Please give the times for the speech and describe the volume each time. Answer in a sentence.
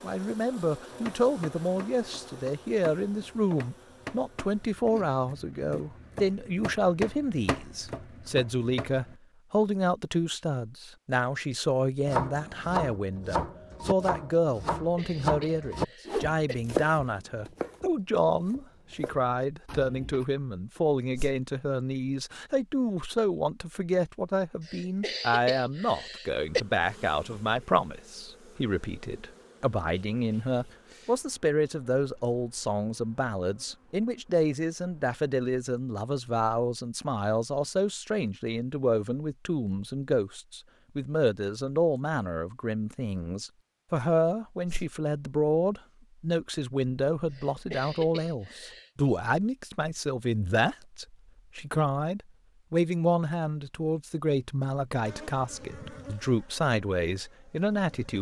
You can hear the speech from 0.0 to 58.1 s, at a steady volume.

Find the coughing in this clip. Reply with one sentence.
You can hear the coughing from 14.8 to 16.6 s, from 24.6 to 26.6 s and from 47.3 to 48.9 s.